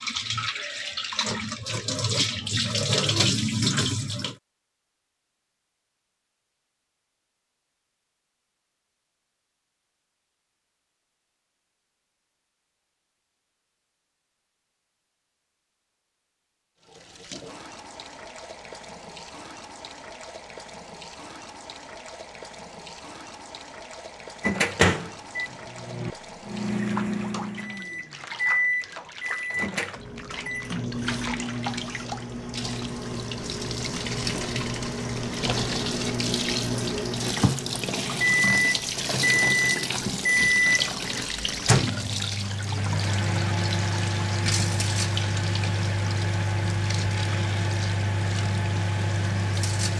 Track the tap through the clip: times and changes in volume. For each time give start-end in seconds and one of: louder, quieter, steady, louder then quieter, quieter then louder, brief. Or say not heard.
0.0-4.3 louder
16.8-49.9 louder then quieter.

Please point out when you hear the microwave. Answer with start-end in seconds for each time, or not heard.
24.4-49.9.